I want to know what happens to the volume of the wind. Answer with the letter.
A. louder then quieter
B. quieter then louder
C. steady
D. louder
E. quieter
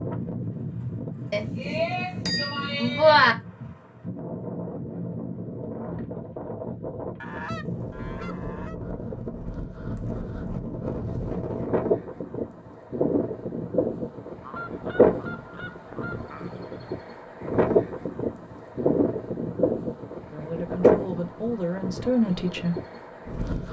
D.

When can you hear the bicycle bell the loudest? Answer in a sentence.
The volume of the bicycle bell peaks at 3 seconds.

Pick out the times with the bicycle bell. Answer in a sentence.
You can hear the bicycle bell from 1.3 to 3.4 s.